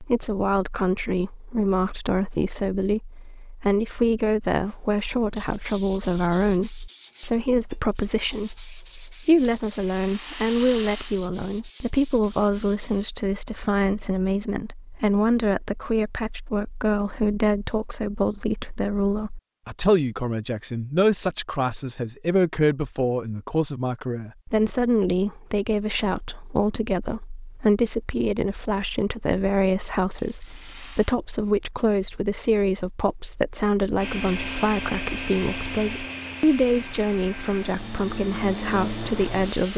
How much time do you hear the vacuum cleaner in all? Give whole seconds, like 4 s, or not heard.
6 s.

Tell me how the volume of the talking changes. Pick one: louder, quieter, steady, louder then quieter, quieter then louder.
steady.